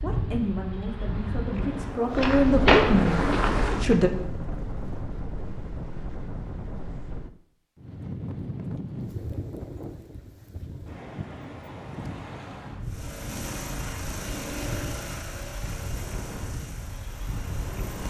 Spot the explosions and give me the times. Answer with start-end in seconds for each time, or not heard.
not heard.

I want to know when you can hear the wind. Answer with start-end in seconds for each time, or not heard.
0.0-18.0.